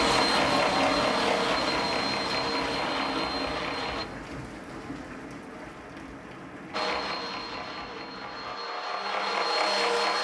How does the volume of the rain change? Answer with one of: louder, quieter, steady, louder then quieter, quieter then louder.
quieter.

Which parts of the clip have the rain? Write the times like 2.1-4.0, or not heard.
0.0-8.6.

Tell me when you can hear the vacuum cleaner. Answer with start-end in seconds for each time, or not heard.
0.0-4.0, 6.7-10.1.